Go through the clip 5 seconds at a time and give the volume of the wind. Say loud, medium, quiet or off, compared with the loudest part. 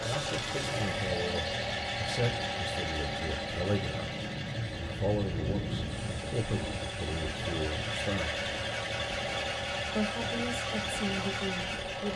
loud, loud, medium.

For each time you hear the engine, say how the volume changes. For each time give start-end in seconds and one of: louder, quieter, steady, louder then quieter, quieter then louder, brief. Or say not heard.
0.0-12.1 quieter then louder.